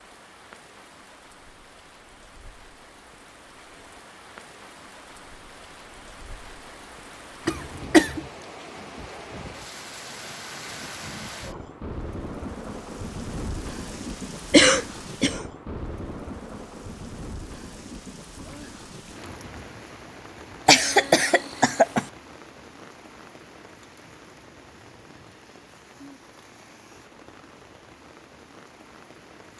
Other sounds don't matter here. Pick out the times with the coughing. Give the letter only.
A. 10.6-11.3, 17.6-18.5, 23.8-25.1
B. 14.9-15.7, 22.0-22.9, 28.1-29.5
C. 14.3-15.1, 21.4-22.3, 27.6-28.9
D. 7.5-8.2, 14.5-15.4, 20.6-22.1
D.